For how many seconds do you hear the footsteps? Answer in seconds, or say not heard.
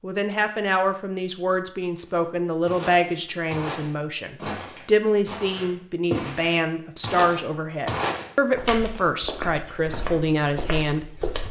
9 s.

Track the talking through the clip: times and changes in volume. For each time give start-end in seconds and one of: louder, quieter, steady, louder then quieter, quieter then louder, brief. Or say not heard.
0.0-11.3 steady.